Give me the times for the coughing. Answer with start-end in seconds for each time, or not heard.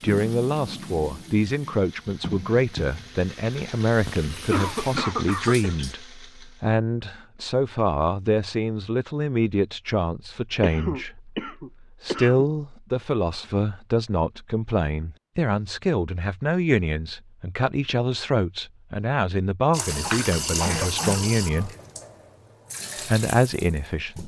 4.0-5.8, 10.6-12.4, 20.0-21.3.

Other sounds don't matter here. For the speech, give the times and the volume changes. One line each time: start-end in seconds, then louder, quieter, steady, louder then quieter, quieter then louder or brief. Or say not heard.
0.0-21.8 steady
23.1-24.2 brief.